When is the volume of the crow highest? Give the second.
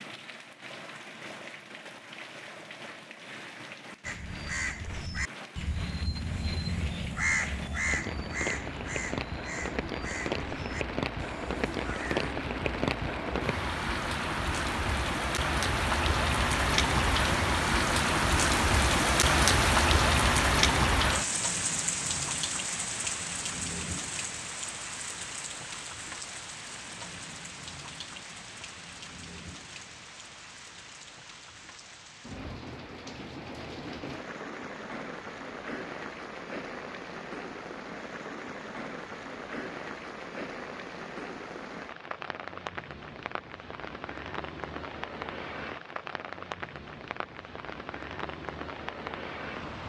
7 s.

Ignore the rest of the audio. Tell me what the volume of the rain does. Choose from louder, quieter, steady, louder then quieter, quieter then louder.
louder then quieter.